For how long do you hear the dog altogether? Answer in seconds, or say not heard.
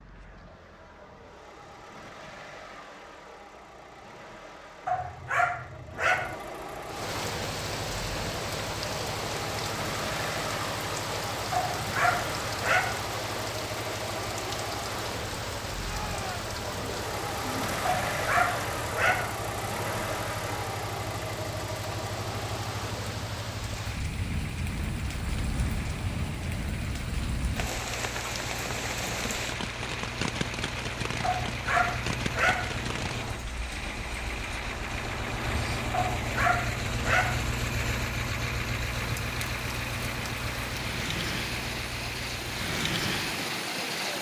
8 s.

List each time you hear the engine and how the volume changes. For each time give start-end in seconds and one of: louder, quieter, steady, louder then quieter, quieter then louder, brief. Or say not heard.
0.0-44.1 louder.